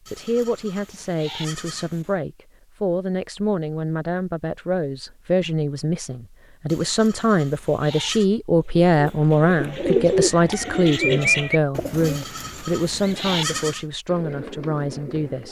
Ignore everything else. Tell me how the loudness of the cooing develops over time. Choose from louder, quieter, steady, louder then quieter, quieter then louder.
quieter then louder.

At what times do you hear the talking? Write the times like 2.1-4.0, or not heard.
0.1-15.4.